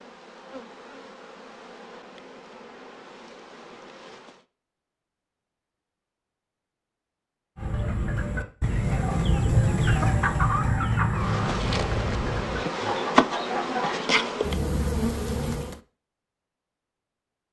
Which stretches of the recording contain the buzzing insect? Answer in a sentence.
You can hear the buzzing insect from 0.0 to 4.5 s and from 11.1 to 15.8 s.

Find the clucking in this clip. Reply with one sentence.
The clucking can be heard from 7.5 to 14.1 s.